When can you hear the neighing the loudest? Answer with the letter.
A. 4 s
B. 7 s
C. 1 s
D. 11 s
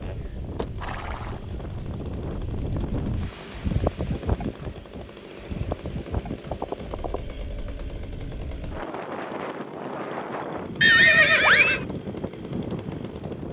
D.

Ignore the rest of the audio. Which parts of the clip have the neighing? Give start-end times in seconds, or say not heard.
0.6-1.9, 5.3-5.8, 6.5-7.2, 10.8-11.8.